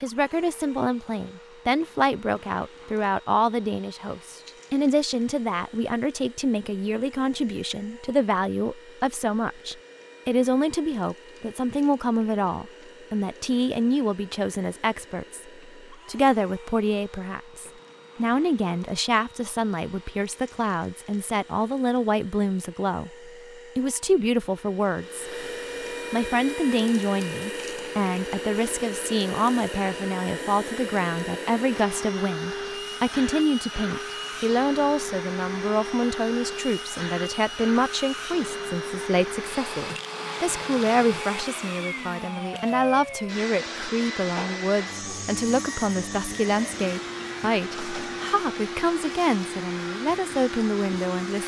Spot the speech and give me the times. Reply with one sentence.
The speech can be heard from 0.0 to 25.3 s and from 26.1 to 51.4 s.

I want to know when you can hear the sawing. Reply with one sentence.
You can't hear the sawing here.